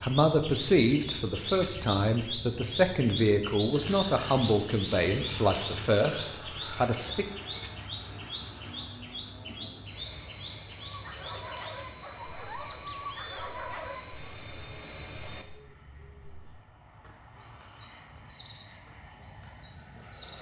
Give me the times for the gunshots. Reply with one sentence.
You can't hear the gunshots here.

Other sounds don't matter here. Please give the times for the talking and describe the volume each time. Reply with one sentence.
You can hear the talking from 0.0 to 7.2 s, at a steady volume.